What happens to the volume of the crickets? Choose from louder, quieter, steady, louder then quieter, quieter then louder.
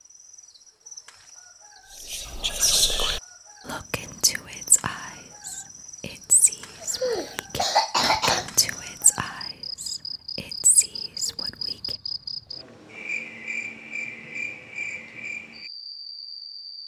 louder.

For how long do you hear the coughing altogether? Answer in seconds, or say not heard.
2 s.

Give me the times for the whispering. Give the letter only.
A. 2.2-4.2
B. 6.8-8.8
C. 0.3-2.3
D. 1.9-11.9
D.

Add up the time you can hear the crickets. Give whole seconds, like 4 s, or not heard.
17 s.